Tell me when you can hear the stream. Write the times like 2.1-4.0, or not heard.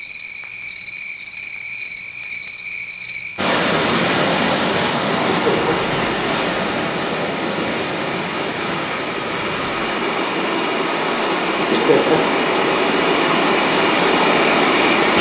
3.4-15.1.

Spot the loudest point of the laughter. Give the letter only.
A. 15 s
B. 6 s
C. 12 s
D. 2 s
C.